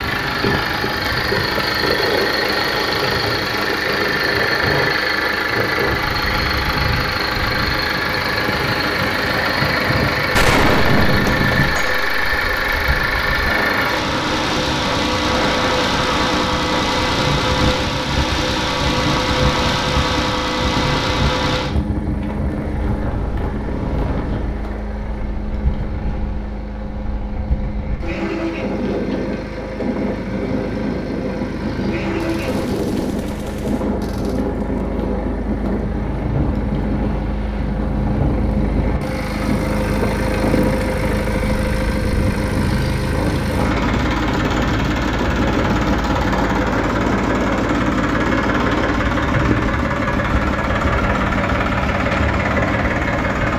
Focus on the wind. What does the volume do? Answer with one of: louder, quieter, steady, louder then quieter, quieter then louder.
steady.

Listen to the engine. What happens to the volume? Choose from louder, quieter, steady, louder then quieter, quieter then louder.
quieter then louder.